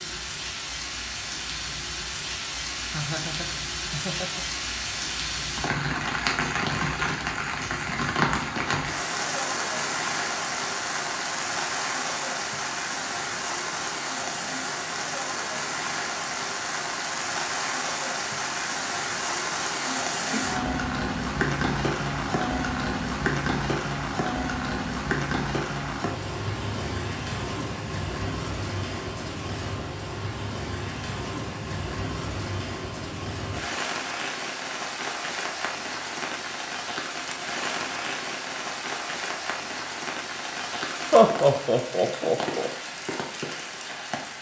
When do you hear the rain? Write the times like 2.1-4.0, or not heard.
0.0-44.3.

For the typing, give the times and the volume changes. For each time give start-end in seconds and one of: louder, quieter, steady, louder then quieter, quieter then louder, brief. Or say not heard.
not heard.